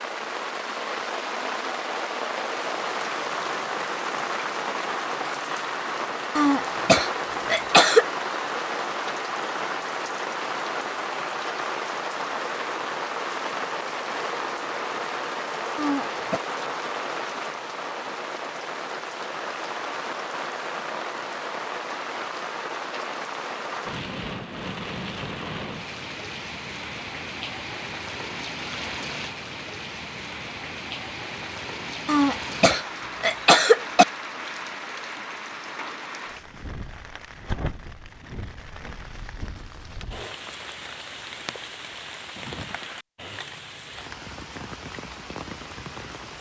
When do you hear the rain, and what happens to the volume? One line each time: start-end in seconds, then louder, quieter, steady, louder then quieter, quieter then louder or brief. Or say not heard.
0.0-46.3 quieter.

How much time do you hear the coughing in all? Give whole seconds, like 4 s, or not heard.
4 s.